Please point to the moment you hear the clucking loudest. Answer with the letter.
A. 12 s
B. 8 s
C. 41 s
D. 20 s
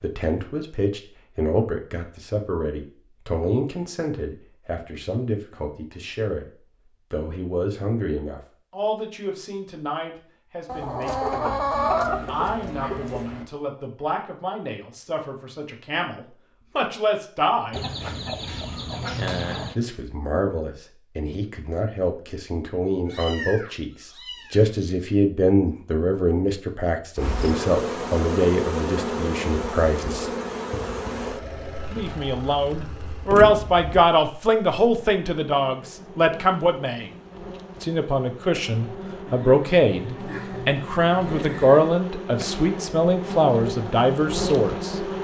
A.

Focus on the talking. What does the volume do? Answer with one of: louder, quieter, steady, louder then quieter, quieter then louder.
louder.